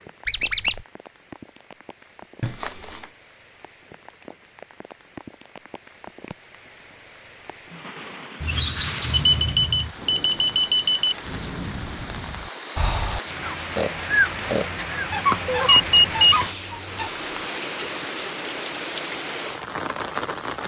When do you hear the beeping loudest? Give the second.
16 s.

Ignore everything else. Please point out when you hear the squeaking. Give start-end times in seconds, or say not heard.
0.2-0.8, 8.4-9.9, 15.1-17.1.